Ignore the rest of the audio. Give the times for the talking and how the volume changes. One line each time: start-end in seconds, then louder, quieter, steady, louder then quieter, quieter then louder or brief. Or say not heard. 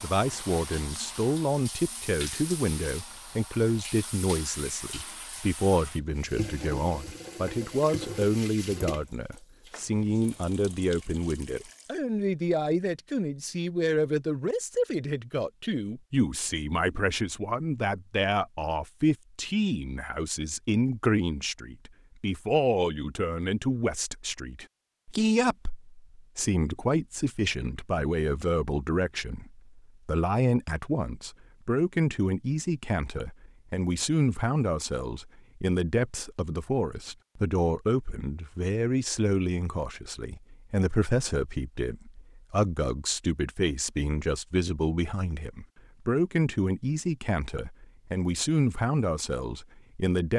0.0-50.3 steady.